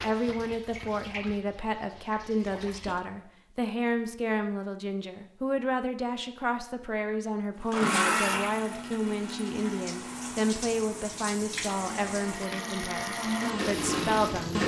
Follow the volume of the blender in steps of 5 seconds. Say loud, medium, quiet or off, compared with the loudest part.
off, loud, loud.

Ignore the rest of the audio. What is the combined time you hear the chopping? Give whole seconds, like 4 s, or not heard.
not heard.